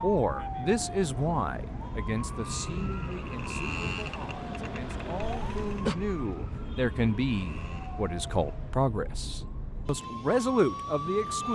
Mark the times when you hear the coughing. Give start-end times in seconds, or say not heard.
5.2-6.0.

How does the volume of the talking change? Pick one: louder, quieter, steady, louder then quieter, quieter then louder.
quieter then louder.